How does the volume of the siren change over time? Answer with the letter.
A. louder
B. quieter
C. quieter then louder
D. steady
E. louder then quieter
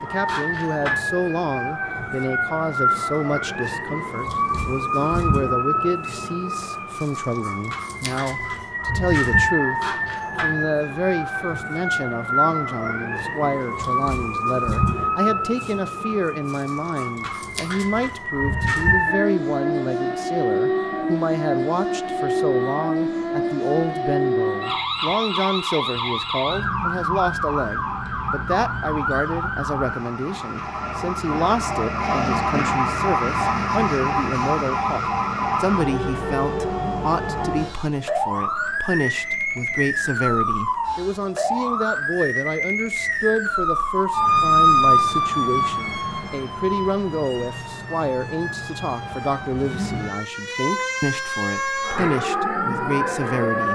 D.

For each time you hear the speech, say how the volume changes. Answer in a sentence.
The speech can be heard from 0.0 to 9.8 s, at a steady volume; and from 10.4 to 53.7 s, at a steady volume.